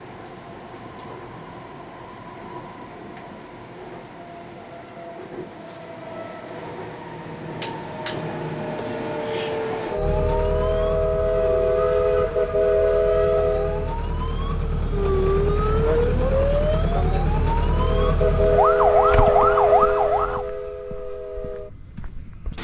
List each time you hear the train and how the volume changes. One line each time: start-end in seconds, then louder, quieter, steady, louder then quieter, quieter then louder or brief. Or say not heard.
0.0-13.9 louder
17.7-22.5 quieter.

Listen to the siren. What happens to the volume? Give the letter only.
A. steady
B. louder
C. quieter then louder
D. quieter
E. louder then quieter
B.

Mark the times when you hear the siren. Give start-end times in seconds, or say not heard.
9.9-20.4.